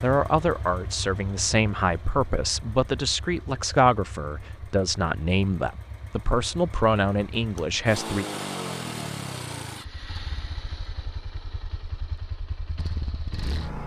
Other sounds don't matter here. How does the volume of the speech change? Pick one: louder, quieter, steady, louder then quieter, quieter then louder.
steady.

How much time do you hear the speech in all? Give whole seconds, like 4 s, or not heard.
8 s.